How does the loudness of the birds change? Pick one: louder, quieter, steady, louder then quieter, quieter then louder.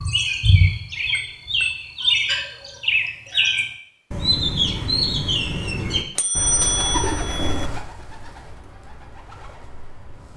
quieter.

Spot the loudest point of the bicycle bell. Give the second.
7 s.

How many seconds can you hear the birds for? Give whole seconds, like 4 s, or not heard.
10 s.